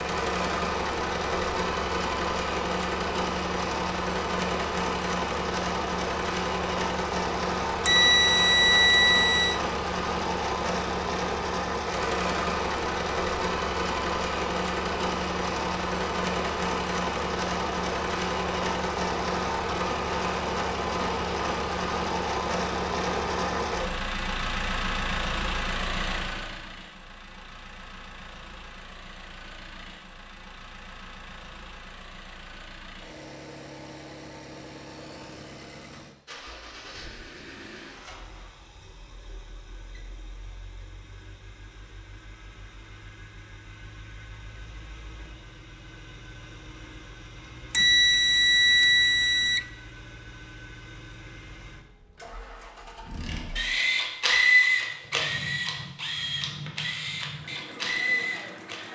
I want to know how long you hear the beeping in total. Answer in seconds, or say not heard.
4 s.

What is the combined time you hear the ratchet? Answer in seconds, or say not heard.
6 s.